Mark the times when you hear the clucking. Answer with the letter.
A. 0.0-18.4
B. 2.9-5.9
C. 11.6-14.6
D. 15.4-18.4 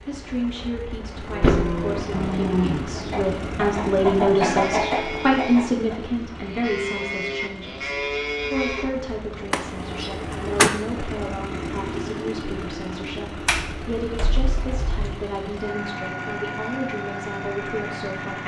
B.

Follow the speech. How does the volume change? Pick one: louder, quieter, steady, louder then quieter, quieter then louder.
louder then quieter.